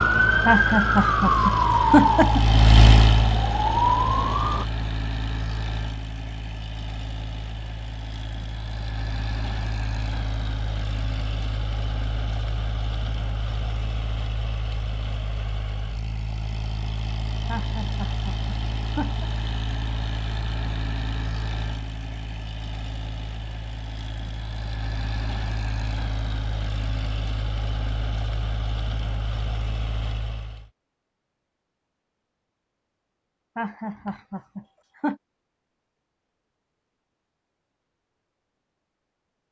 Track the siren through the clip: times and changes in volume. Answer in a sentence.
You can hear the siren from 0.0 to 4.7 s, getting quieter then louder.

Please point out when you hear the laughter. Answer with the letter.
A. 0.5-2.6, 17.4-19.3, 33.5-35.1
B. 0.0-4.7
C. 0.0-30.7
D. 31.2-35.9
A.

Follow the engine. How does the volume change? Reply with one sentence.
The volume of the engine goes down.